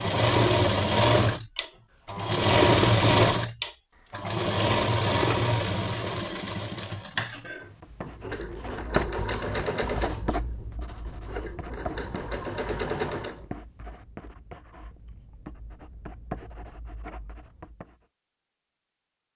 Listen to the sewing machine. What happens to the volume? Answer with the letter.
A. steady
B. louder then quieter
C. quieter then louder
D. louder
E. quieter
E.